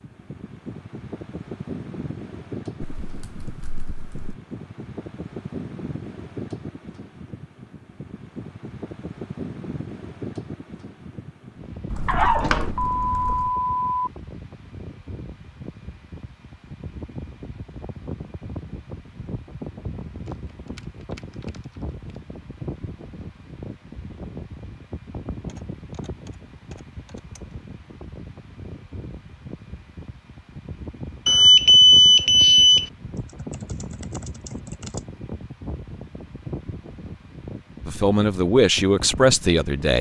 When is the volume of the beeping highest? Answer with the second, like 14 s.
32 s.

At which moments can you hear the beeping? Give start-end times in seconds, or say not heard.
12.1-14.1, 31.2-32.9.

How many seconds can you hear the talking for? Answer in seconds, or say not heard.
2 s.